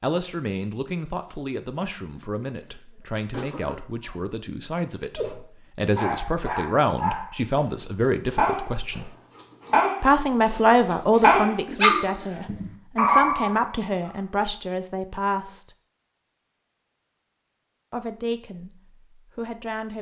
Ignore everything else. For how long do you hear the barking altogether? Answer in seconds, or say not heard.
7 s.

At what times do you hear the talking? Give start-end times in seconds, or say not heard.
0.0-9.1, 10.0-15.7, 17.9-19.9.